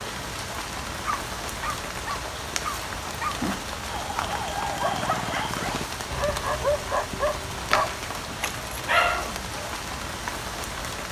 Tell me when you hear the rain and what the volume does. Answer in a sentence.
You can hear the rain from 0.0 to 11.0 s, at a steady volume.